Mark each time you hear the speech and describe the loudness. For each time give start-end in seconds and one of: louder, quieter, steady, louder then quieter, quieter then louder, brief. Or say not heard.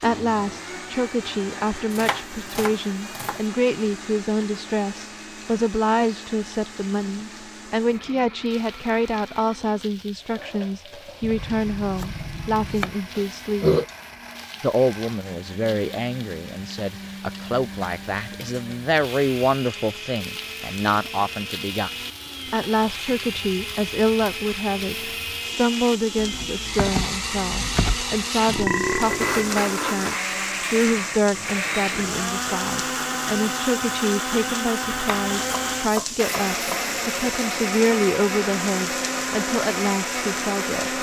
0.0-13.8 steady
14.6-40.9 steady.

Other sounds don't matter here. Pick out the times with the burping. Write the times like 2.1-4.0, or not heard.
13.2-13.8, 28.4-29.6.